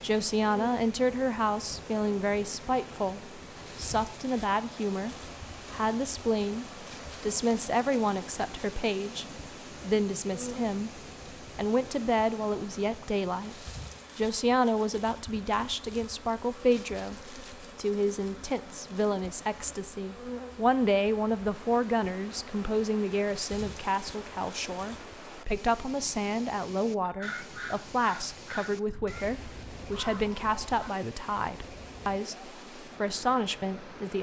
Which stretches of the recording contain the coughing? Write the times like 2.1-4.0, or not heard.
not heard.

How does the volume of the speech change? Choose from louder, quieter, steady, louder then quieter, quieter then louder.
steady.